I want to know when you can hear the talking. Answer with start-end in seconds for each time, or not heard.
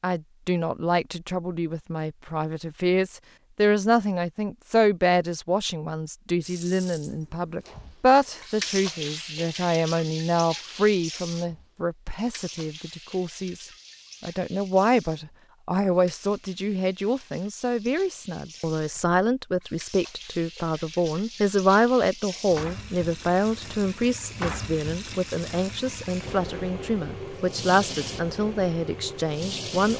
0.0-29.9.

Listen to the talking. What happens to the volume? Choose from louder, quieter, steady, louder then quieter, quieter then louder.
steady.